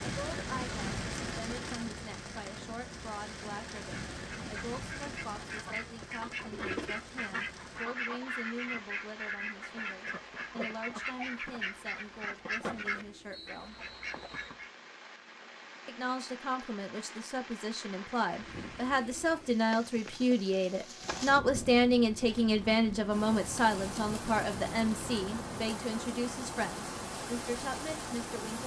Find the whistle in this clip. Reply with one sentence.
You can hear the whistle from 13.3 to 14.6 s.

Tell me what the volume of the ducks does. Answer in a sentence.
The loudness of the ducks stays about the same.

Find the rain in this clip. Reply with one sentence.
You can hear the rain from 0.0 to 28.6 s.